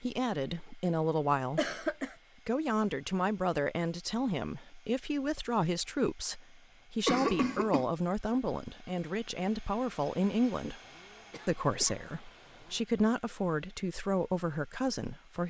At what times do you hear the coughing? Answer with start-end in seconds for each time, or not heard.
1.6-2.1, 7.0-7.8, 10.8-12.8.